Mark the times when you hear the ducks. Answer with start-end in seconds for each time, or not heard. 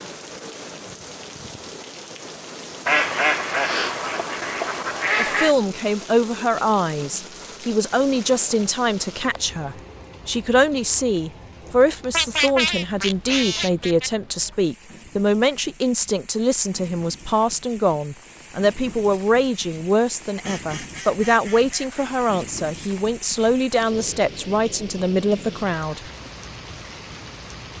2.9-5.5, 12.1-14.1, 20.4-22.1.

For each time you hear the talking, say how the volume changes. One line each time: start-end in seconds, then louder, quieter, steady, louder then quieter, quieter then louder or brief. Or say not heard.
5.2-26.0 steady.